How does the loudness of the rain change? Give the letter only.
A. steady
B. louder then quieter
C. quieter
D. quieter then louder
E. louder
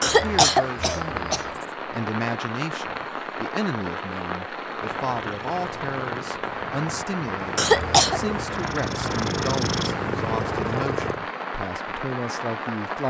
A.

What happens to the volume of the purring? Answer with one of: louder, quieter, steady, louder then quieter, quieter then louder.
louder.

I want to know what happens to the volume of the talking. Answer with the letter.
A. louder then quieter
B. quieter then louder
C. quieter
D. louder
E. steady
E.